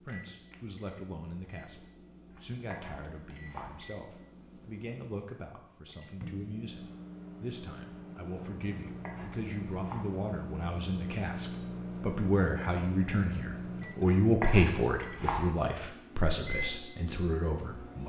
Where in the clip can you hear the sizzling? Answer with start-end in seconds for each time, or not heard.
not heard.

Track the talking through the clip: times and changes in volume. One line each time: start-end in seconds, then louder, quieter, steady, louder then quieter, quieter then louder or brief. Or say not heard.
0.0-18.0 louder.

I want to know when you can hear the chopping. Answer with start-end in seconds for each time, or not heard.
2.3-3.8, 8.8-10.2, 14.0-15.5.